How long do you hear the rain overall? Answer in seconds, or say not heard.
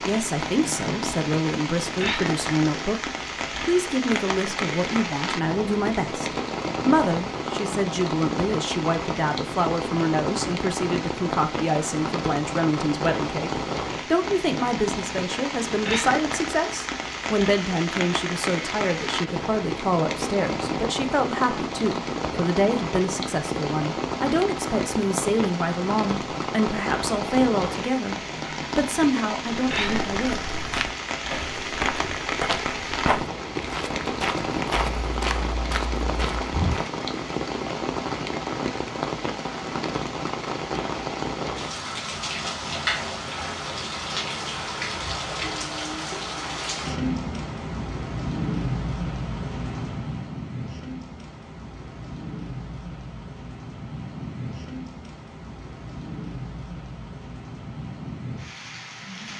59 s.